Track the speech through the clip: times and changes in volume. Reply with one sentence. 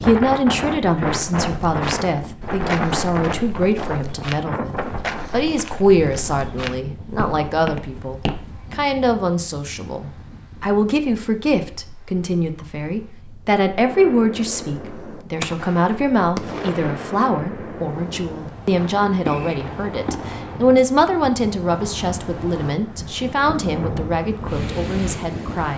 The speech can be heard from 0.0 to 25.7 s, at a steady volume.